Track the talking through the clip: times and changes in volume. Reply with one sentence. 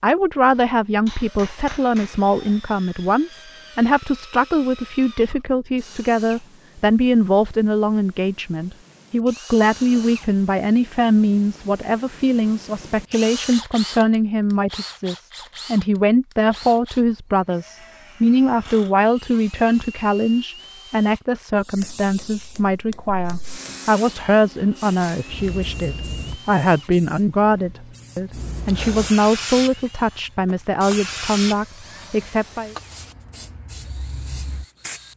You can hear the talking from 0.0 to 32.8 s, at a steady volume.